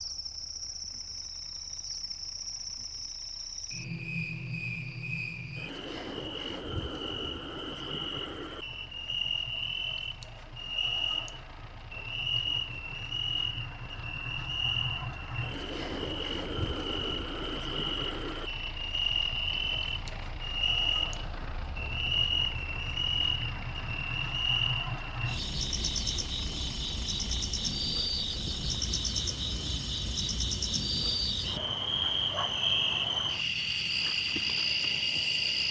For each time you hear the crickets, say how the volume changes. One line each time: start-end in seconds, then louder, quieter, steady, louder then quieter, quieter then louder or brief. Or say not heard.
0.0-35.6 louder.